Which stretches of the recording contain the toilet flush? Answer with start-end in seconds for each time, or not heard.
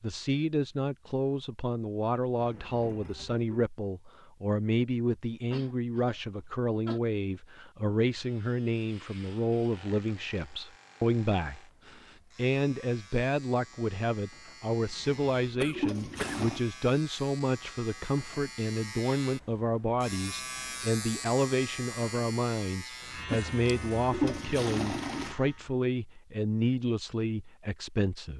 2.4-3.6, 14.7-16.6, 23.0-25.4.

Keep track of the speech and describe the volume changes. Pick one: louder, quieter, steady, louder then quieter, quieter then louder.
steady.